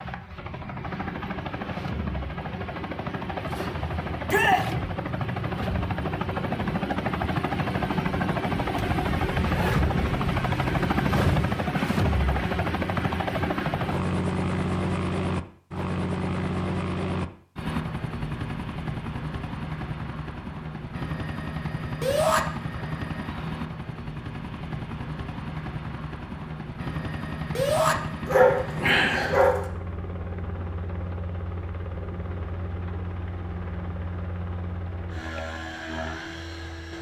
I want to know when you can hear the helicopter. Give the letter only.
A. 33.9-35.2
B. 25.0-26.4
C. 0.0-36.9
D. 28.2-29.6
C.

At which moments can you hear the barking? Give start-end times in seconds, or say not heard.
28.2-29.6.